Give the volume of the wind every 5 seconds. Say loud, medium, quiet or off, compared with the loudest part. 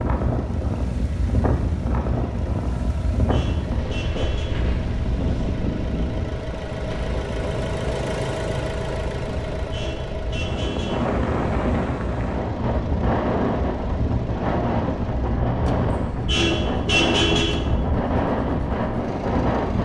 loud, medium, loud, loud.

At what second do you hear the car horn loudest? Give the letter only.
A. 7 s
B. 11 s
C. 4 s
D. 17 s
D.